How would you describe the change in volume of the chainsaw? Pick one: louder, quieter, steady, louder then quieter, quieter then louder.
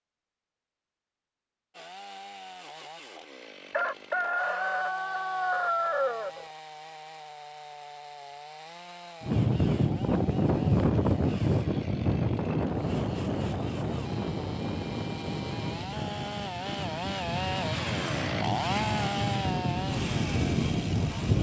louder.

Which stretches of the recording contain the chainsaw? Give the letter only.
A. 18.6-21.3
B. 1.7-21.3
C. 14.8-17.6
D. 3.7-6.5
B.